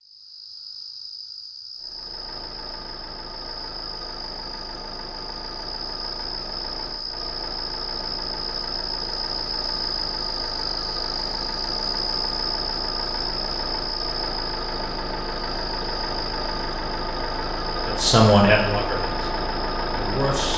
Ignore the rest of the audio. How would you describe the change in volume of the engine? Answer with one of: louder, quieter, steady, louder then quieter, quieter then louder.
louder.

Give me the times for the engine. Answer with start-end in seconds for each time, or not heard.
1.8-20.5.